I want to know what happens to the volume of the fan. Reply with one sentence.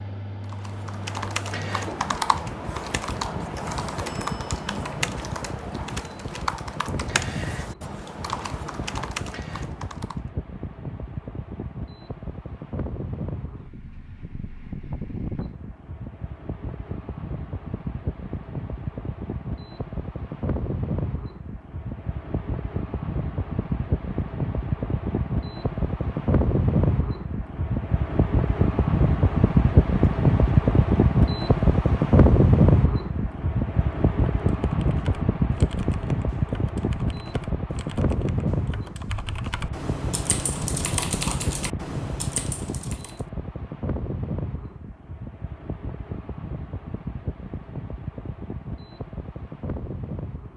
The loudness of the fan goes up, then down.